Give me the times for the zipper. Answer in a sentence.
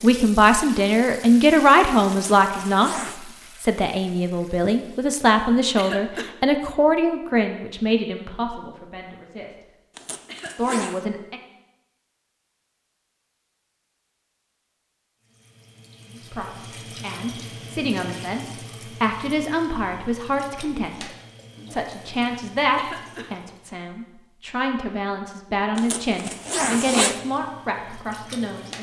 You can hear the zipper from 2.1 to 3.2 s, from 9.9 to 11.0 s and from 25.8 to 27.1 s.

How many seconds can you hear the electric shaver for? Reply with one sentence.
The electric shaver can't be heard in this clip.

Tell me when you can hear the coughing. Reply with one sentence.
The coughing can be heard from 5.8 to 6.3 s, from 10.2 to 10.8 s and from 22.8 to 23.3 s.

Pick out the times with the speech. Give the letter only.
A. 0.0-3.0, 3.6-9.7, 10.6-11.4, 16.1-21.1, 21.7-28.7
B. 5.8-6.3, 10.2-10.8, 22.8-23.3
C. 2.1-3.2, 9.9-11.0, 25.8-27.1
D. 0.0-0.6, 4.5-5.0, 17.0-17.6
A.